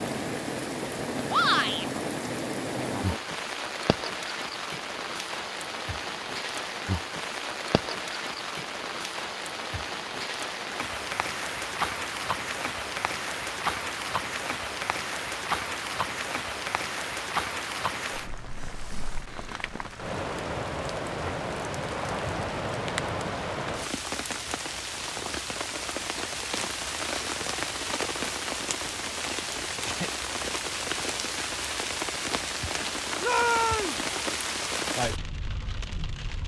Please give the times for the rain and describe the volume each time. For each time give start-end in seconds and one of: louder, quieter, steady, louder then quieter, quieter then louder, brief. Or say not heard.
0.0-36.4 steady.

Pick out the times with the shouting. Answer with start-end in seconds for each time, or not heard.
1.2-1.9, 33.2-34.0.